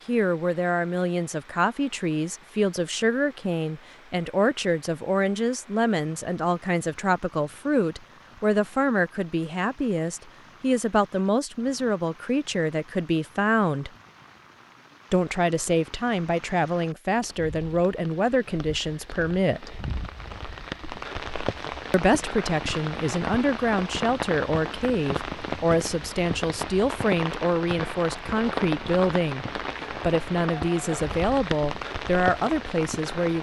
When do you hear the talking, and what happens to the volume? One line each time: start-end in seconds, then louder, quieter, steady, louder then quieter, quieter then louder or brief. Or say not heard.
0.1-13.9 steady
15.1-19.8 steady
21.9-33.3 steady.